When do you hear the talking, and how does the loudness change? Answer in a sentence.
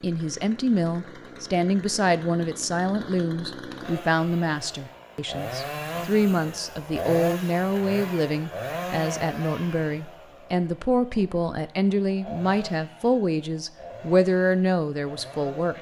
You can hear the talking from 0.0 to 15.7 s, at a steady volume.